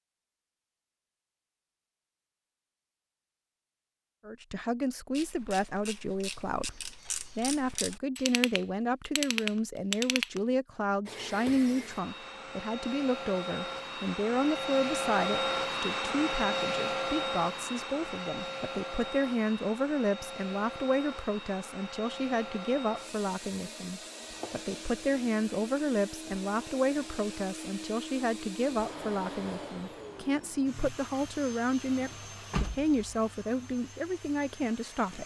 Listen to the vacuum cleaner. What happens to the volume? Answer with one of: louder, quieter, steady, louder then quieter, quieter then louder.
quieter.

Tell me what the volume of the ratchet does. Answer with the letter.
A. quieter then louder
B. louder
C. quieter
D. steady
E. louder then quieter
B.